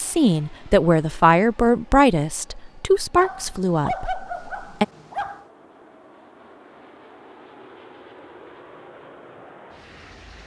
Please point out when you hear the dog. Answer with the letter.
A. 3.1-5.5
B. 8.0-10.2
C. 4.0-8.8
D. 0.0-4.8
A.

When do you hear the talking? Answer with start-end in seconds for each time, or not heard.
0.0-4.8.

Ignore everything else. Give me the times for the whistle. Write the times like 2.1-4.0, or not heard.
not heard.